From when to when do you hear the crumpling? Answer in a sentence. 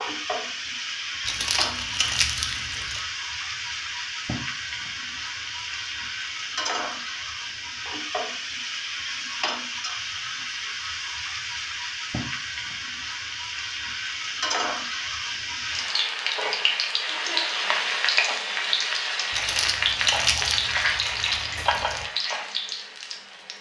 The crumpling can be heard from 1.2 to 3.0 s and from 19.3 to 22.1 s.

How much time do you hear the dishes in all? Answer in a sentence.
You can't hear the dishes here.